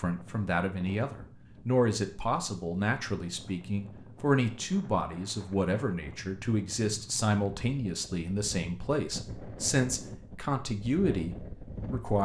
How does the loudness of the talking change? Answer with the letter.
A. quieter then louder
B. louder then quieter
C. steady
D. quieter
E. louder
C.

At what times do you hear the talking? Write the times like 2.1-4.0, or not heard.
0.0-12.2.